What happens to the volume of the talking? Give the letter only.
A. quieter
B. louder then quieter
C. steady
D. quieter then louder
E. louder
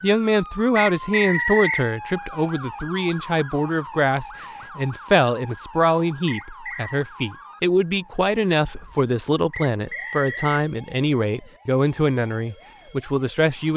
C.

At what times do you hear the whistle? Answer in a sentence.
The whistle can be heard from 0.8 to 1.9 s, from 6.2 to 7.0 s and from 9.5 to 10.6 s.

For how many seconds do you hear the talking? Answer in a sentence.
The talking can be heard for 14 seconds in total.